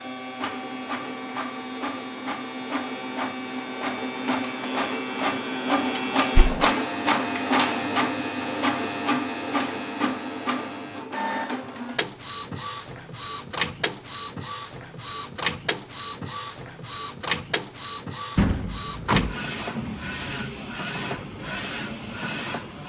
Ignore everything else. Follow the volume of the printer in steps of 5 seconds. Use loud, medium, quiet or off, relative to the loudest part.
medium, loud, medium, medium, medium.